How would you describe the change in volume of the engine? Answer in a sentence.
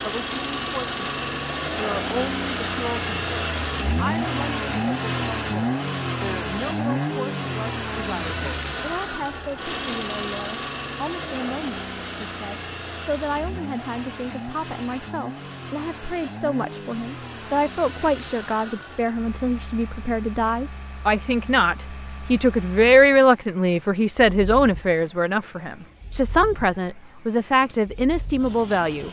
The loudness of the engine goes down.